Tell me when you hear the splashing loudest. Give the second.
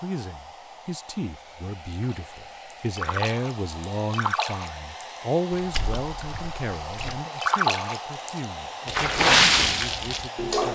9 s.